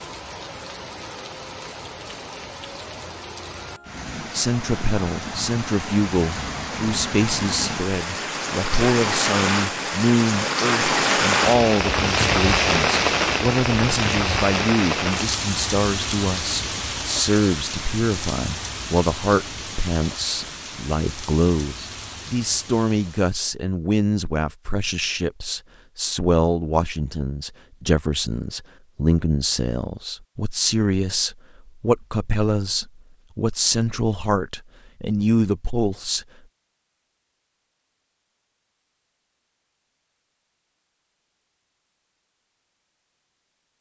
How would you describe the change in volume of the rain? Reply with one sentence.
The volume of the rain goes up, then down.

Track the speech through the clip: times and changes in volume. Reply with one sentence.
The speech can be heard from 4.3 to 36.2 s, at a steady volume.